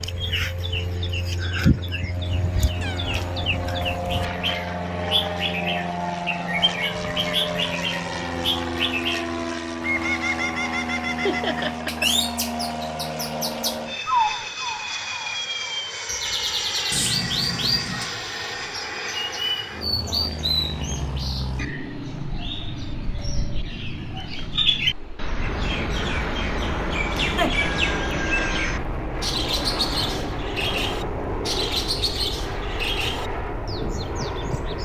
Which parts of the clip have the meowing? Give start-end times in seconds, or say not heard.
2.2-4.2, 16.9-18.1, 27.7-28.8.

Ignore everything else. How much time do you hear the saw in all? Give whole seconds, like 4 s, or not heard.
not heard.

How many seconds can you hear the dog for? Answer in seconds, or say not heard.
not heard.